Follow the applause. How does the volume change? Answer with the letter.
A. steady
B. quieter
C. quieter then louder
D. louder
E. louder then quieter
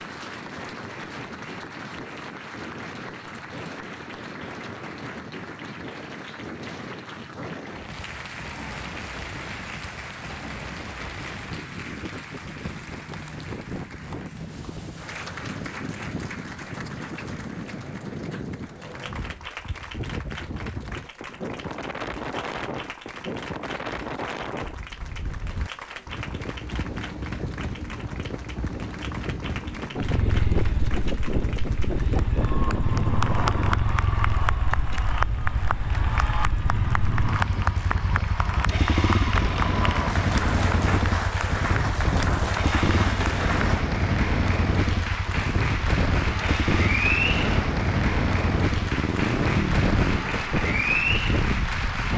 D.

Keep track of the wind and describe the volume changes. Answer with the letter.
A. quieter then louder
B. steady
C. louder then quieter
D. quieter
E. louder
E.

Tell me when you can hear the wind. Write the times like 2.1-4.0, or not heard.
0.0-52.1.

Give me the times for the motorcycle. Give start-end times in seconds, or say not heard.
29.9-50.1.